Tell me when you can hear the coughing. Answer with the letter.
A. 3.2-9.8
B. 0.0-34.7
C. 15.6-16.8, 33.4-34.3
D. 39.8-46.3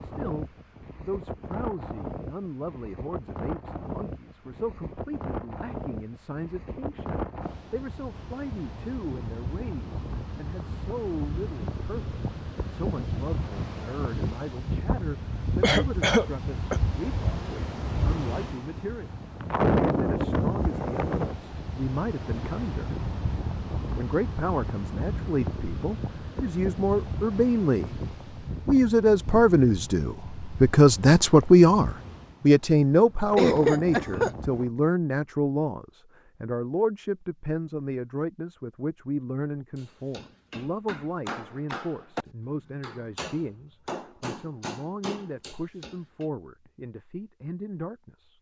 C.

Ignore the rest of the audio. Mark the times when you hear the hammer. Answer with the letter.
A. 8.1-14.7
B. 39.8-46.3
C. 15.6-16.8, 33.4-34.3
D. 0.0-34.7
B.